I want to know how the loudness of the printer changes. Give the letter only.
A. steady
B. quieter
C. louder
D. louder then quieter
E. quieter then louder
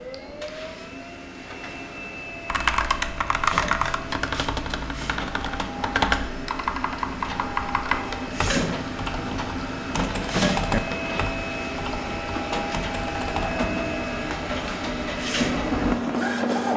C.